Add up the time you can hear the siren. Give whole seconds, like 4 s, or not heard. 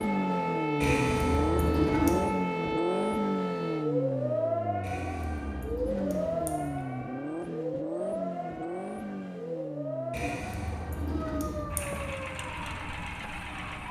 14 s.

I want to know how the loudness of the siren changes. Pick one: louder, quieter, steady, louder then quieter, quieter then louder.
quieter.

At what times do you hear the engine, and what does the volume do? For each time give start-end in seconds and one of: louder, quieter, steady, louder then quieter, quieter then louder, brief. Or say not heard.
0.0-13.8 quieter.